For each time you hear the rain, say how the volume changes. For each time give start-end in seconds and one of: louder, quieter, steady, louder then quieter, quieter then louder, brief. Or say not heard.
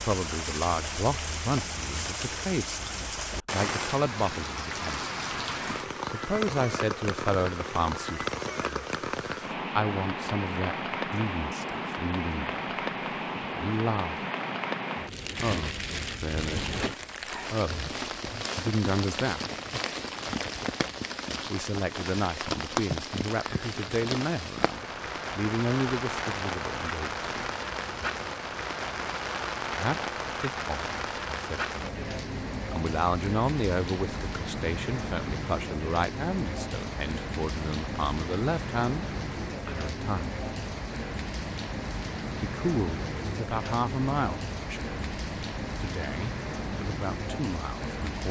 0.0-48.2 steady.